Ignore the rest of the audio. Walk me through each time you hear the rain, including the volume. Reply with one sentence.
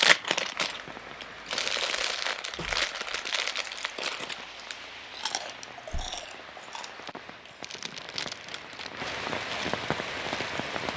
You can hear the rain from 0.0 to 10.9 s, getting louder.